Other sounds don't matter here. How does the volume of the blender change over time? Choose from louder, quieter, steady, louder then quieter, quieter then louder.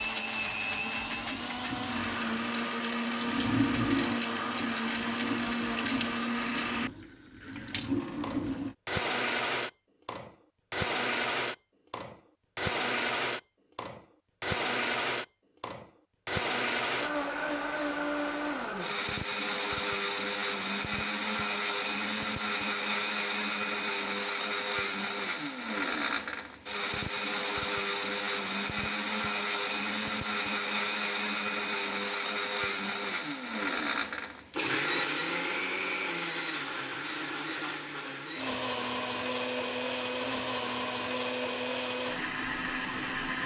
steady.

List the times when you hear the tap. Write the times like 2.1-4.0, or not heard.
0.0-8.8.